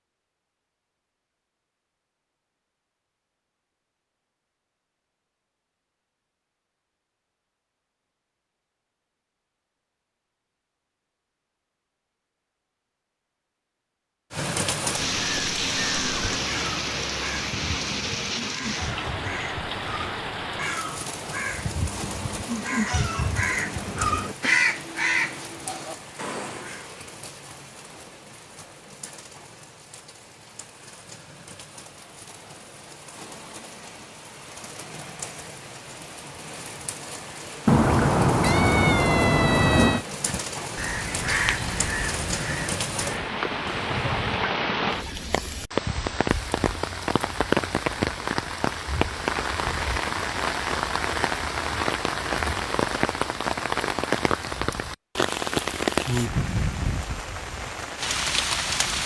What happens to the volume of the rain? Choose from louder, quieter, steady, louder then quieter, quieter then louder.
quieter then louder.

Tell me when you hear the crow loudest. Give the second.
25 s.